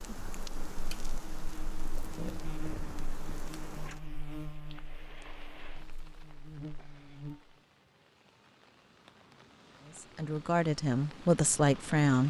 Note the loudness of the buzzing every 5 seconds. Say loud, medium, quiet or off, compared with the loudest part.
loud, loud, off.